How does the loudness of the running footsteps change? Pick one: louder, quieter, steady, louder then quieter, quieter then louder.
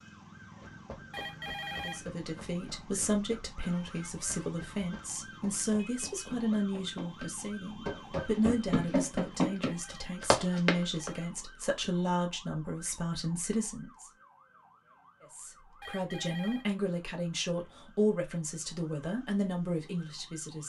louder.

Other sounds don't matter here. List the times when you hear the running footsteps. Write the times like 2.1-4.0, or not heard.
0.6-11.1.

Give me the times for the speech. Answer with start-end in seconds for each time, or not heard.
1.7-14.1, 15.3-20.6.